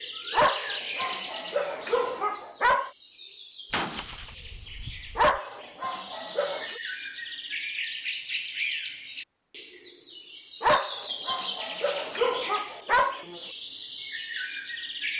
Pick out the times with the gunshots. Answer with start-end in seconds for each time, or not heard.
3.7-5.4.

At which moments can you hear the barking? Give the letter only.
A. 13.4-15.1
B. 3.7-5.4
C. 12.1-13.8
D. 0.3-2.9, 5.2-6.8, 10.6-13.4
D.